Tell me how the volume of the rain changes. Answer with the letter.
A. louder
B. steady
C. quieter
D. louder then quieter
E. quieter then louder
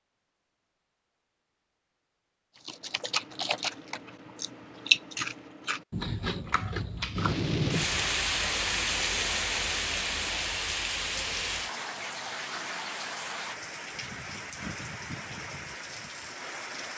C.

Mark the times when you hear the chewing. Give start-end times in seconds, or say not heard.
2.6-8.3.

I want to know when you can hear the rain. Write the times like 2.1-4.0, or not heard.
7.2-16.9.